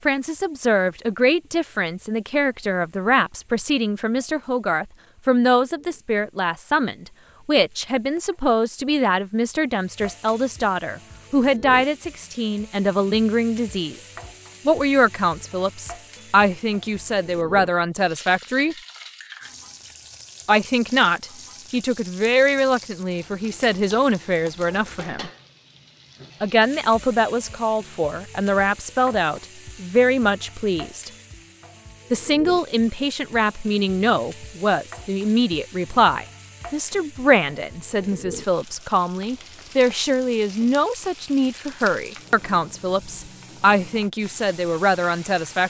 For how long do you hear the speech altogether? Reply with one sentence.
The speech can be heard for 41 seconds in total.